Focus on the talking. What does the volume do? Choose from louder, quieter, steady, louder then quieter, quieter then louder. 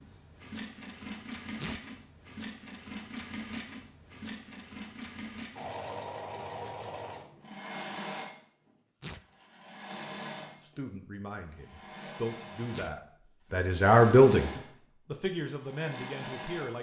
louder then quieter.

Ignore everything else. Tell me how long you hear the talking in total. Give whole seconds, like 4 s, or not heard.
6 s.